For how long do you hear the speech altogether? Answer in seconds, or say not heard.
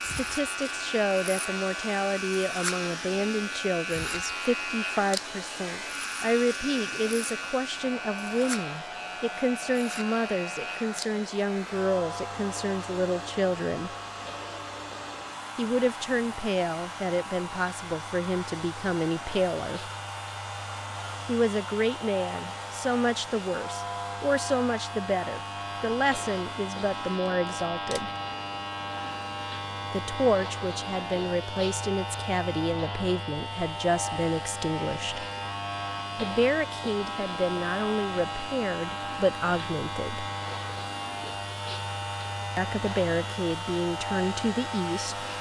37 s.